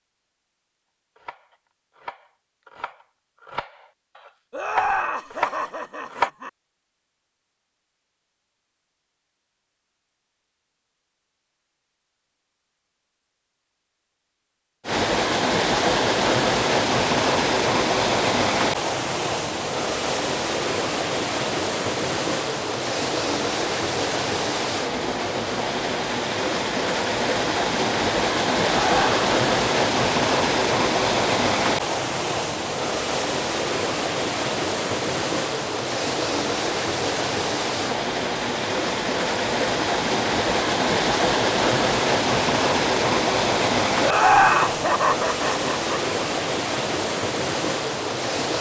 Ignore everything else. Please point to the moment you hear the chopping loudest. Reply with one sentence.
The volume of the chopping peaks at 6 seconds.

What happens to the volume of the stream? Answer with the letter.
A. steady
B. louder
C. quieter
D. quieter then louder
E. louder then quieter
A.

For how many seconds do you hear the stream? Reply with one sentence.
You can hear the stream for 34 seconds altogether.